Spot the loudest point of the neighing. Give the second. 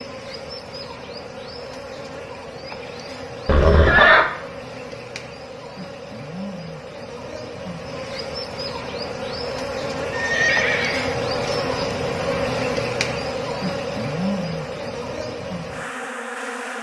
4 s.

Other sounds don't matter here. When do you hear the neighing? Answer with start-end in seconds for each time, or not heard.
3.5-4.2, 10.1-11.2.